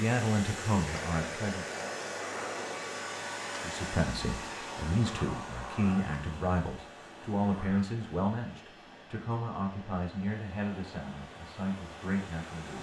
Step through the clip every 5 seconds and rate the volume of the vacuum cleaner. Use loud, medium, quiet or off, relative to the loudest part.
loud, medium, medium.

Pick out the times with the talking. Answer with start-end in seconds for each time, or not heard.
0.0-1.9, 3.6-12.7.